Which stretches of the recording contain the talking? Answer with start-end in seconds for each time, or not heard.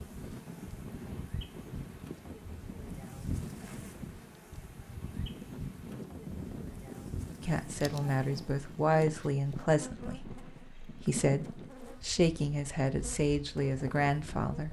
7.4-14.6.